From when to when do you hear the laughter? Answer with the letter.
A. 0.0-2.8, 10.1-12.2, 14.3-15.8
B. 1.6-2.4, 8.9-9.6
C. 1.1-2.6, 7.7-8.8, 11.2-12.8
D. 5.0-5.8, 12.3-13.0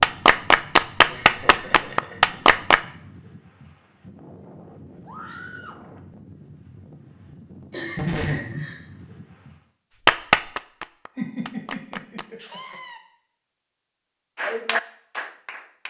C.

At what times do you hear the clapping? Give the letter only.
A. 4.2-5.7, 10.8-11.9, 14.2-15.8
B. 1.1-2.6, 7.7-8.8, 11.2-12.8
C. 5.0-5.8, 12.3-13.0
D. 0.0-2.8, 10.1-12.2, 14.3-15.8
D.